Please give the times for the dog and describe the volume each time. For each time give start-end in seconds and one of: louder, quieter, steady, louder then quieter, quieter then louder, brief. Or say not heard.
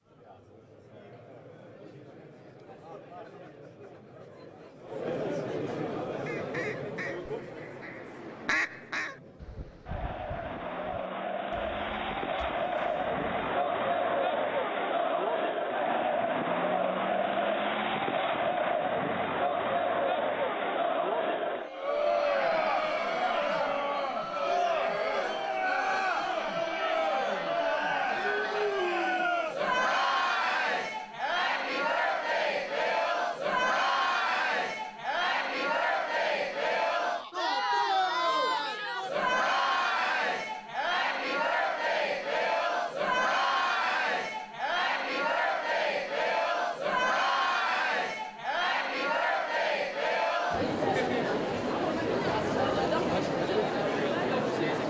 not heard.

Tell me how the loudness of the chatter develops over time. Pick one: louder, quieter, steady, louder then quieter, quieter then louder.
louder.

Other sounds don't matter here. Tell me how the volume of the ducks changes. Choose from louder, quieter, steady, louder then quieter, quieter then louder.
louder then quieter.